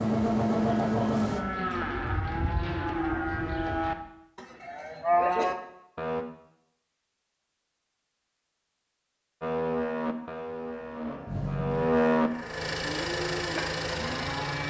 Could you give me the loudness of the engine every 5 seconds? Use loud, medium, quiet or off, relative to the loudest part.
loud, off, medium.